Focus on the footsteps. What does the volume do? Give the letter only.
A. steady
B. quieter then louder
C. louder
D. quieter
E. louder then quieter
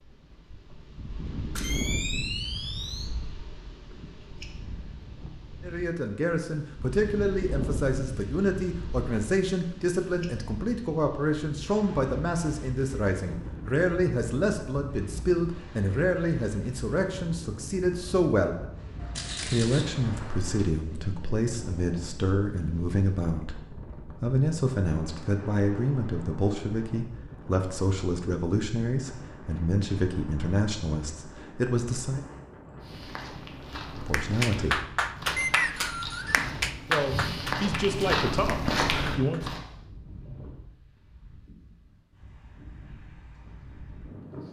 C.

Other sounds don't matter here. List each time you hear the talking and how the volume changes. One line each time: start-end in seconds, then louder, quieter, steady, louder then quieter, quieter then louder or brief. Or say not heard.
5.6-18.6 steady
19.4-32.2 steady
33.9-34.8 brief
36.9-39.5 brief.